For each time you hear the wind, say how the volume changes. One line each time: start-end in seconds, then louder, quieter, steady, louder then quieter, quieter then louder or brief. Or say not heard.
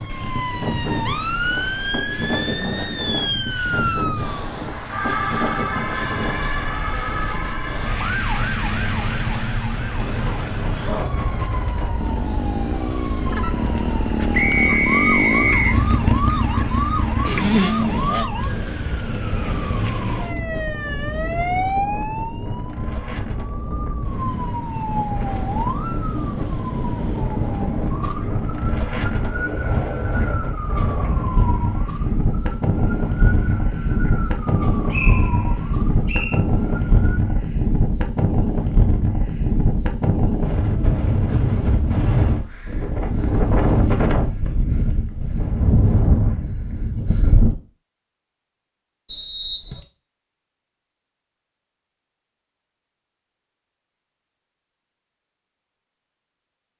0.0-47.5 louder.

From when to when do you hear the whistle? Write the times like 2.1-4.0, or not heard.
14.3-15.8, 34.9-36.4, 49.0-49.9.